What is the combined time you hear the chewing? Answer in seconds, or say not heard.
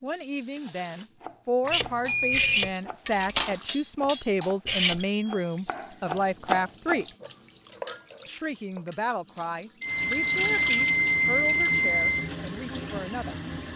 not heard.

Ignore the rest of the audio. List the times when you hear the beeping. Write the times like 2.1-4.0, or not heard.
1.6-2.7, 5.0-5.5, 9.8-12.3.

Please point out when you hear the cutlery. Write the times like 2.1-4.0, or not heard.
1.7-5.0.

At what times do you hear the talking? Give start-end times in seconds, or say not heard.
0.0-7.0, 8.2-13.7.